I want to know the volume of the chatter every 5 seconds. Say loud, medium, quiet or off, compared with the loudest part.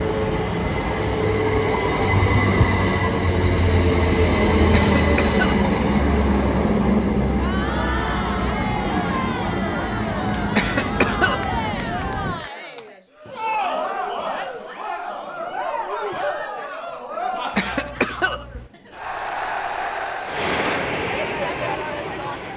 off, loud, loud, loud, loud.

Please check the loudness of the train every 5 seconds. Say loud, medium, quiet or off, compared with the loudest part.
loud, loud, medium, off, medium.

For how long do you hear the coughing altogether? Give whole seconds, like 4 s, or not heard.
3 s.